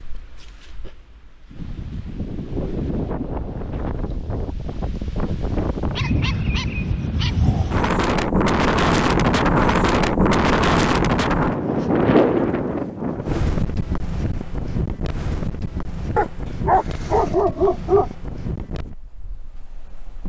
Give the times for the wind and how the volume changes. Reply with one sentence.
You can hear the wind from 0.0 to 20.2 s, getting louder then quieter.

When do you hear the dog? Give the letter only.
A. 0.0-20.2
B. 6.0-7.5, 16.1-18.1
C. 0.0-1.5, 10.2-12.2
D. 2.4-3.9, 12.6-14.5
B.